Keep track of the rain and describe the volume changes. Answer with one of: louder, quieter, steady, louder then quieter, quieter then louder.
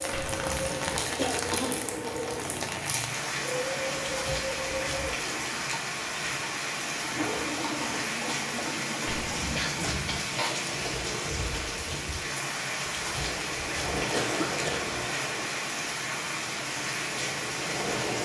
steady.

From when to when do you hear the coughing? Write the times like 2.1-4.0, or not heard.
1.1-1.8, 9.6-10.3, 14.1-14.9.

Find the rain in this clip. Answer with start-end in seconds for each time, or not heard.
0.0-18.2.